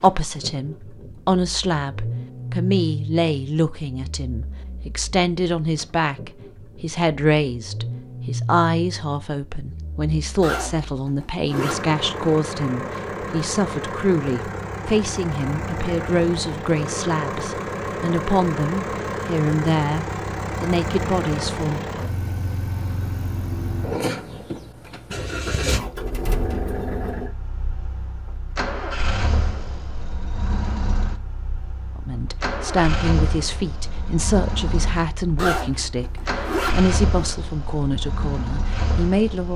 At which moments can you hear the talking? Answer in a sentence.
You can hear the talking from 0.0 to 21.8 s and from 31.9 to 39.5 s.